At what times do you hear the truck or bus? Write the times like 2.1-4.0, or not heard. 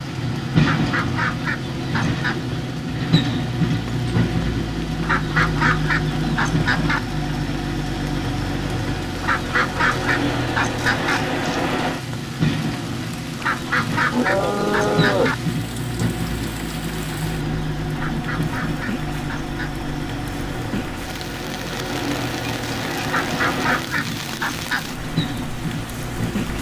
0.0-26.5.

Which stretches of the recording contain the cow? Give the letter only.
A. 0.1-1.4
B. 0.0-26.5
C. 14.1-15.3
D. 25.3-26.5
C.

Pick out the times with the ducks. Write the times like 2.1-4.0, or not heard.
0.6-2.4, 5.0-7.0, 9.2-11.2, 13.4-15.3, 17.9-19.9, 23.1-24.9.